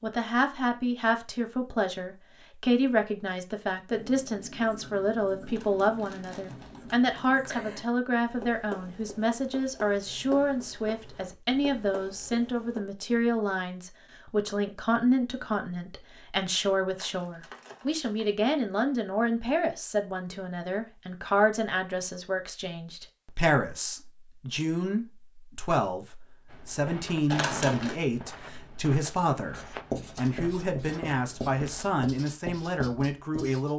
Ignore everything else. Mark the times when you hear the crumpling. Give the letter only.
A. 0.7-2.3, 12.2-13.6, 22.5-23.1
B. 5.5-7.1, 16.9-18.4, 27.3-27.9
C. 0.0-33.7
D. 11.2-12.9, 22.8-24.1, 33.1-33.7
B.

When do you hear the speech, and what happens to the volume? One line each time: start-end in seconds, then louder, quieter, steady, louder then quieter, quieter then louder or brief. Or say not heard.
0.0-33.7 steady.